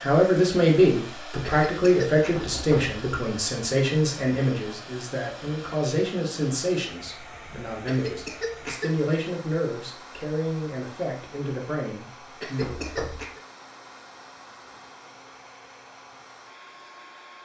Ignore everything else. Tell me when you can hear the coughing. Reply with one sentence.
The coughing can be heard from 1.4 to 2.5 s, from 7.8 to 9.1 s and from 12.4 to 13.4 s.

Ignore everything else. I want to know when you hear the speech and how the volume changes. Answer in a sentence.
The speech can be heard from 0.0 to 12.8 s, getting quieter.